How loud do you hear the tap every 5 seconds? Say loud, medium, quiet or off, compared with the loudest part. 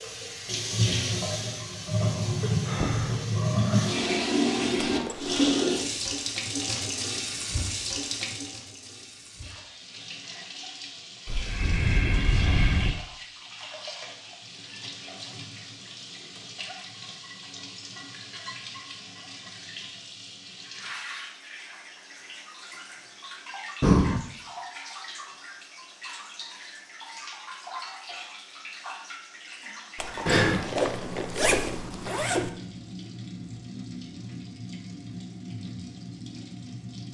loud, loud, quiet, quiet, quiet, quiet, quiet, quiet.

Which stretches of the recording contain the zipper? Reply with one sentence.
You can hear the zipper from 4.8 to 5.5 s and from 29.9 to 32.5 s.